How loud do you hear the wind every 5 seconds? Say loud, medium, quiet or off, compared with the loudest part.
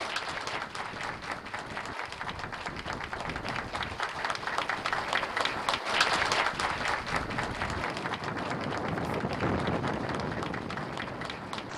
medium, loud, loud.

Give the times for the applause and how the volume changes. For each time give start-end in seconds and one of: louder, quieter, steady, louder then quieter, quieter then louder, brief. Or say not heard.
0.0-11.7 louder then quieter.